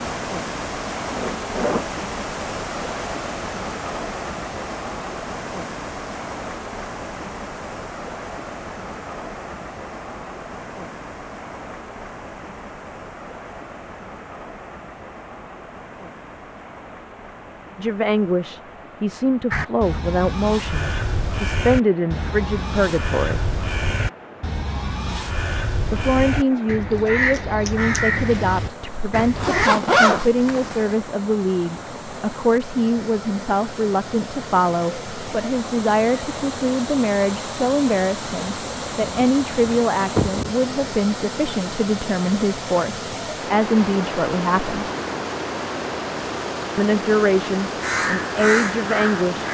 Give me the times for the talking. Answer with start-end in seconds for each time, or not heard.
17.8-23.6, 25.9-44.9, 46.8-49.4.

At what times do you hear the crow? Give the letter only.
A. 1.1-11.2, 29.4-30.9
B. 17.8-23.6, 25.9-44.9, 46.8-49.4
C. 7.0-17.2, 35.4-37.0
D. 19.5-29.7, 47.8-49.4
D.